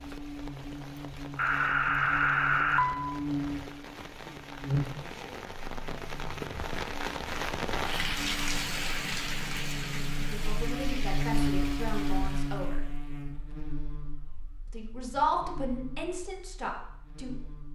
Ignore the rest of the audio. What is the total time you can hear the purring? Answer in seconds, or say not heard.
not heard.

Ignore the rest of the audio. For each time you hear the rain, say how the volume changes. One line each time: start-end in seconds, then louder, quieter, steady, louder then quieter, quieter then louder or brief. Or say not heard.
0.0-12.8 louder then quieter.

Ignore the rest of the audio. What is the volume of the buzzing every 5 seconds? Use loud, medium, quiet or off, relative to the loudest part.
loud, medium, loud, quiet.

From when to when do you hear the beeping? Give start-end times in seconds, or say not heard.
1.4-3.1.